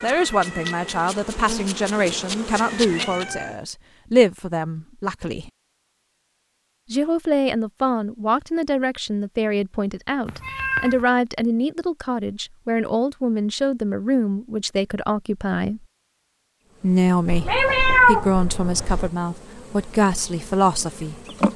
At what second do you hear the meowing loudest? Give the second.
18 s.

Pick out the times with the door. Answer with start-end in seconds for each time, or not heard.
not heard.